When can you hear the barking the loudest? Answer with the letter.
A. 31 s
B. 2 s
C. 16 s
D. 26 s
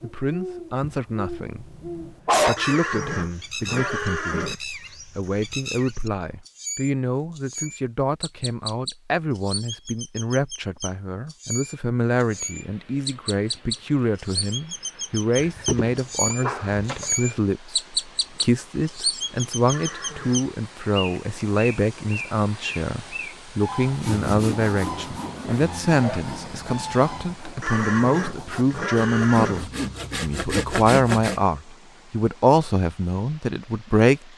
B.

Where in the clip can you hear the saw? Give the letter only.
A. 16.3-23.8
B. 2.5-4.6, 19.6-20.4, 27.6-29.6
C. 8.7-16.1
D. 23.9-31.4
D.